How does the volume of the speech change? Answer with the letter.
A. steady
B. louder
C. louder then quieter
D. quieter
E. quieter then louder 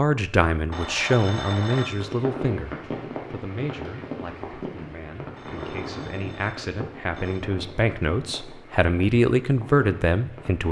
E.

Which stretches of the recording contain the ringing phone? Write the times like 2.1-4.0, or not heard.
0.7-2.1, 5.3-7.5.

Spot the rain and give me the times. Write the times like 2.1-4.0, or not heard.
1.9-10.6.